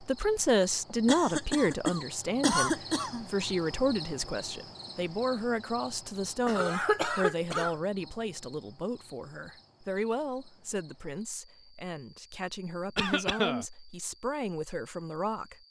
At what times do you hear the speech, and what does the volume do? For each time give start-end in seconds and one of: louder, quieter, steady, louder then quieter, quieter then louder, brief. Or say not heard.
0.0-15.6 quieter.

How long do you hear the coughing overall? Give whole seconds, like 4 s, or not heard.
4 s.